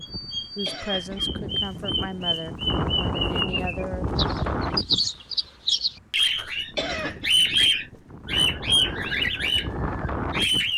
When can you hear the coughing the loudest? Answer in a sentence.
The volume of the coughing peaks at 7 seconds.